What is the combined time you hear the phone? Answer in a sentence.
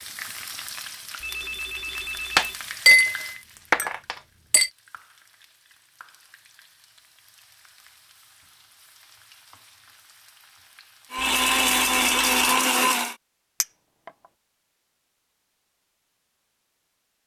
The phone can be heard for 3 seconds in total.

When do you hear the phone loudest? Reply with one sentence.
The volume of the phone peaks at 12 seconds.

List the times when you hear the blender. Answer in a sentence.
You can hear the blender from 11.1 to 13.2 s.